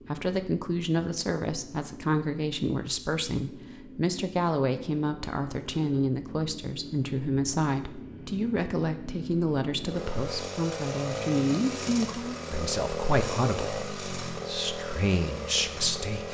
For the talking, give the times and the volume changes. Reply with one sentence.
The talking can be heard from 0.1 to 16.2 s, at a steady volume.